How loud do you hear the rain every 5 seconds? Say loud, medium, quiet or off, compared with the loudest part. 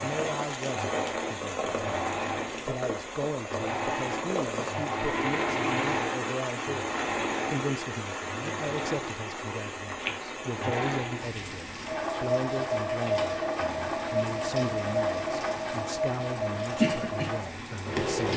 loud, loud, medium, loud.